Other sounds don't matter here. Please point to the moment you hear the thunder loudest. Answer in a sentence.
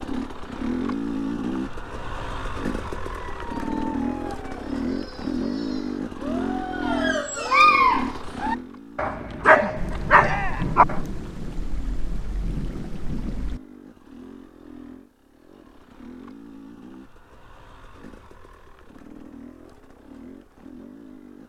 The volume of the thunder peaks at 11 seconds.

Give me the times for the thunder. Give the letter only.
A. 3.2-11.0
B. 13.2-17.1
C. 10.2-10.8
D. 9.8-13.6
D.